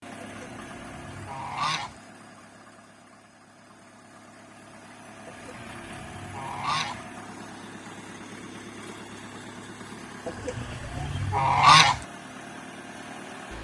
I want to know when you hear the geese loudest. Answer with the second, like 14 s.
12 s.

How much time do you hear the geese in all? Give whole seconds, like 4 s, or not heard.
5 s.